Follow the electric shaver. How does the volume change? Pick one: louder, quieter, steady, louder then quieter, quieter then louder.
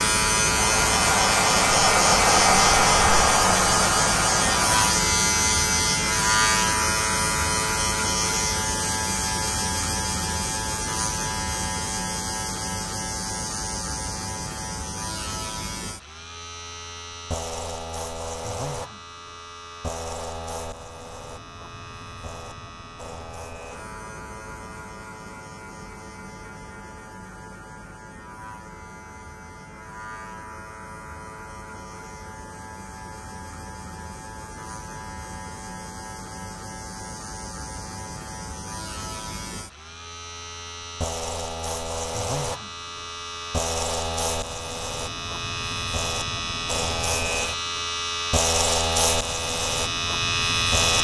quieter then louder.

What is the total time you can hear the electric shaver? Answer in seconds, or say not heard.
51 s.